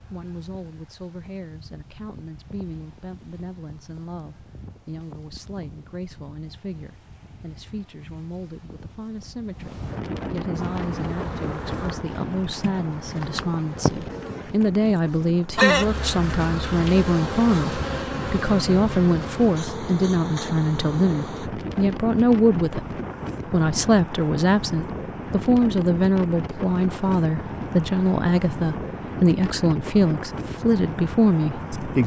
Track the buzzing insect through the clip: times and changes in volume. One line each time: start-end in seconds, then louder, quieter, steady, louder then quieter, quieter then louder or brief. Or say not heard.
10.6-21.5 louder then quieter.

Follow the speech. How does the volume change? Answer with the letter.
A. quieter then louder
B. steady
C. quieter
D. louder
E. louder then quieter
D.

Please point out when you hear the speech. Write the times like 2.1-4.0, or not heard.
0.1-32.0.